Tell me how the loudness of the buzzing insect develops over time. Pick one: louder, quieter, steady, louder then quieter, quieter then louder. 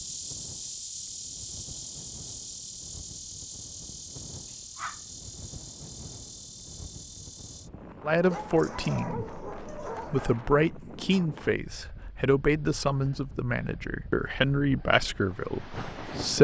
quieter.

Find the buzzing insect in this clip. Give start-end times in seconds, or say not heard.
0.0-7.7.